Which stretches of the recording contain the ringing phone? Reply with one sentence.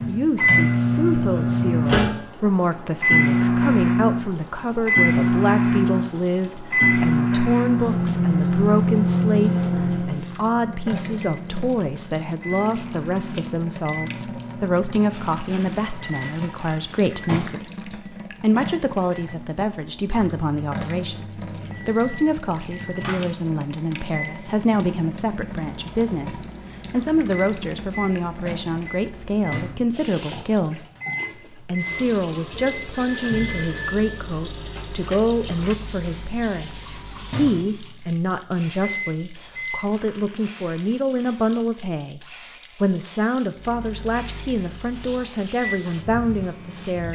The ringing phone can be heard from 32.8 to 34.2 s.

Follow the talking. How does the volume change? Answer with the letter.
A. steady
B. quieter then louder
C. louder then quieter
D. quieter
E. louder
A.